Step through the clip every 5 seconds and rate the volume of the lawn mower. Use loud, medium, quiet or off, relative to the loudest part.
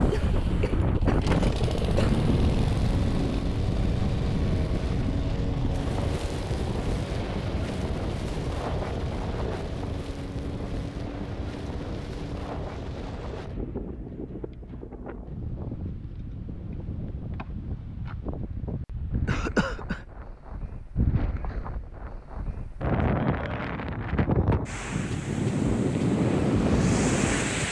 loud, loud, medium, off, off, off.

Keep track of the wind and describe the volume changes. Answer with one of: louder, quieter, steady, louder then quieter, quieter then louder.
quieter then louder.